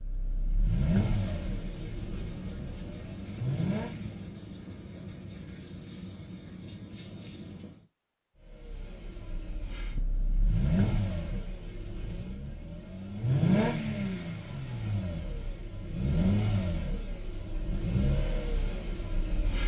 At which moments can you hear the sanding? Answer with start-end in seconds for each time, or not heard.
1.1-7.8.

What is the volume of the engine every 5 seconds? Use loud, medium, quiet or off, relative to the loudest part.
loud, quiet, loud, loud.